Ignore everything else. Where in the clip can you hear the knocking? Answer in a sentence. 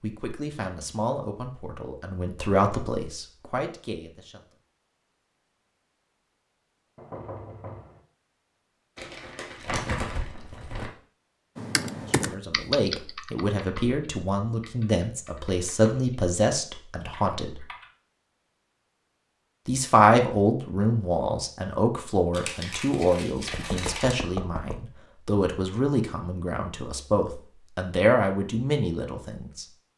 The knocking can be heard from 7.0 to 8.0 s and from 23.4 to 24.9 s.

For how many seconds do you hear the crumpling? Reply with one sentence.
You can hear the crumpling for 4 seconds altogether.